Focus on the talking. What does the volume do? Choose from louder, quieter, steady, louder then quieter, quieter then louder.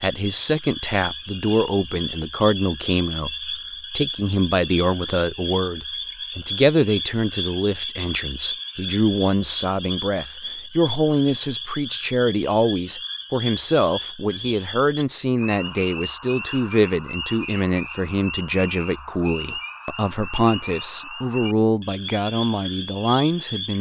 steady.